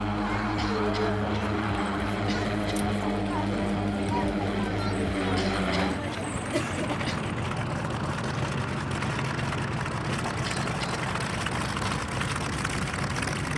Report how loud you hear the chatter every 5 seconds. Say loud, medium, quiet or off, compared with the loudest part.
loud, loud, off.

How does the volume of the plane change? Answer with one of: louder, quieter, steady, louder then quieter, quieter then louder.
steady.